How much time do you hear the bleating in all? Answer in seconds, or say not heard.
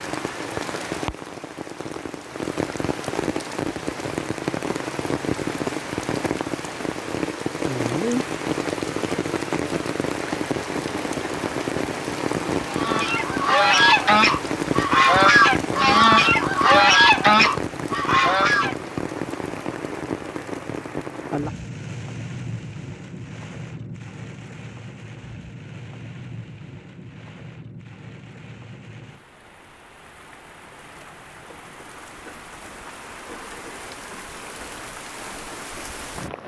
not heard.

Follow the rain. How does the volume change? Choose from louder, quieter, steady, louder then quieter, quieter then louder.
quieter.